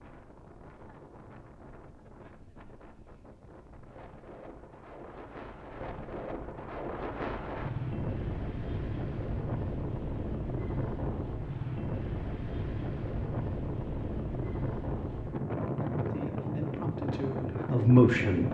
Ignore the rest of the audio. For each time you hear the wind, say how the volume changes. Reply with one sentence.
You can hear the wind from 0.0 to 18.4 s, getting louder.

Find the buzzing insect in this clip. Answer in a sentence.
The buzzing insect can't be heard in this clip.